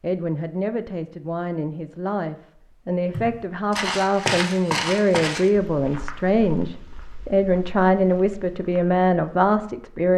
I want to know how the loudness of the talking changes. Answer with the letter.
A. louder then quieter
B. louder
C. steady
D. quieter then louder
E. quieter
B.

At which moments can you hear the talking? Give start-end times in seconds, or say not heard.
0.0-10.1.